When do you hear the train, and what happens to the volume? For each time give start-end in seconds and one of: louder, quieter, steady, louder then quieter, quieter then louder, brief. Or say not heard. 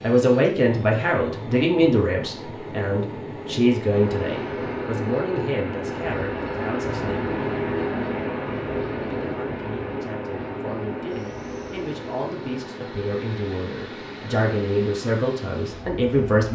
0.0-16.4 louder then quieter.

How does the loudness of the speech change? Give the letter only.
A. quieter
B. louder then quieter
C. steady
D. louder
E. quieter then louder
E.